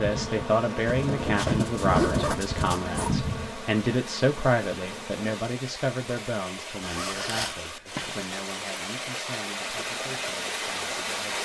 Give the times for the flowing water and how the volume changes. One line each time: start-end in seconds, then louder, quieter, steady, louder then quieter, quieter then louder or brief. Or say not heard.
0.0-11.4 louder.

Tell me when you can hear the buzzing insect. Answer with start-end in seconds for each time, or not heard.
0.0-5.4, 9.6-11.4.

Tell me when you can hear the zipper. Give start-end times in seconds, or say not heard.
0.9-3.1, 6.8-7.5.